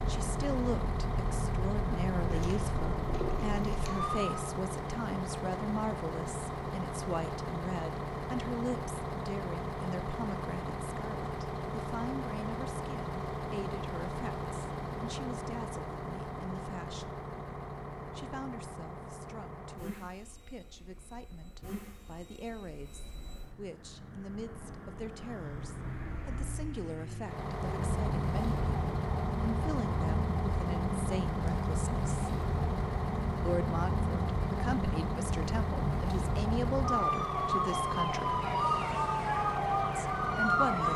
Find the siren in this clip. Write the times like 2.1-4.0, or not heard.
0.0-4.3, 27.4-40.9.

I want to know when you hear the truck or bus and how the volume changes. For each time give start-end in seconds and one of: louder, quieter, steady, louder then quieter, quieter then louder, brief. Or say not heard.
0.0-40.9 quieter then louder.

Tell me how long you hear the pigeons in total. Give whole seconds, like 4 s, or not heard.
2 s.